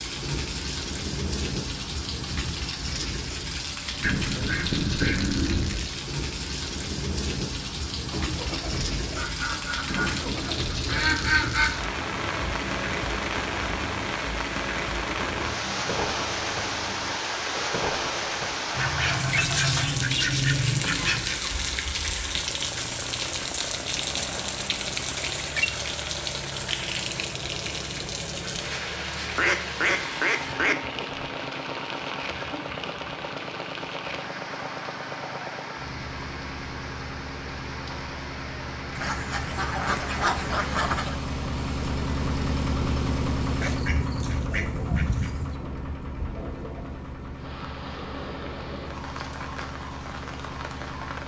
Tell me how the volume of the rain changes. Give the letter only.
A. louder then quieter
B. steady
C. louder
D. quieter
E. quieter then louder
D.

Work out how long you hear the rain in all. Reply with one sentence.
The rain can be heard for 51 seconds in total.